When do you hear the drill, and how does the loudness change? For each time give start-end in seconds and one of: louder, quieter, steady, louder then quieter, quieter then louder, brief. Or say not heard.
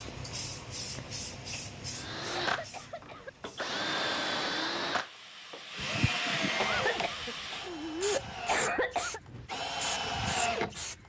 1.9-10.8 quieter then louder.